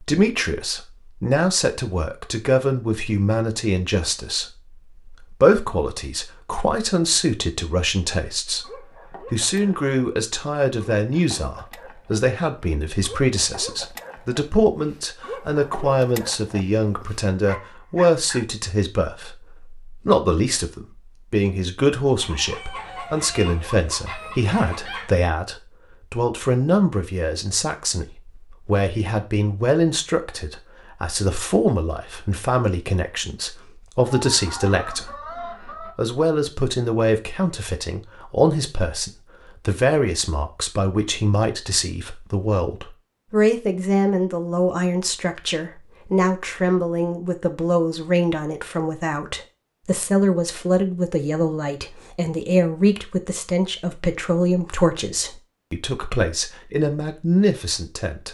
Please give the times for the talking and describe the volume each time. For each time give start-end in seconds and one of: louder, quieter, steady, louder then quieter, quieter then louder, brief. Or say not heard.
0.0-58.3 steady.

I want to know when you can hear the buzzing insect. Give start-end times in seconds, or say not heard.
not heard.